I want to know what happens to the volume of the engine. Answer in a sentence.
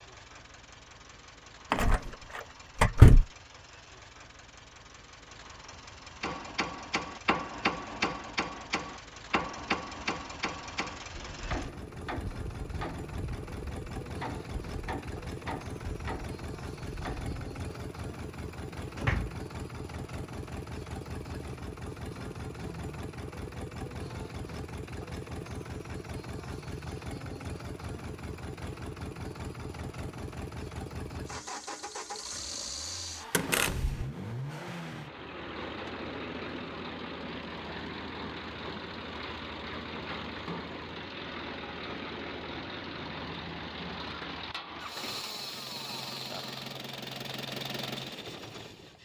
The loudness of the engine goes up.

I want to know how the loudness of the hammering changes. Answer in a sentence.
The loudness of the hammering goes down.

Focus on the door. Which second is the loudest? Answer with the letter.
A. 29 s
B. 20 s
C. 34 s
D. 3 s
D.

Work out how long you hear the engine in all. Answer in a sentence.
The engine can be heard for 49 seconds in total.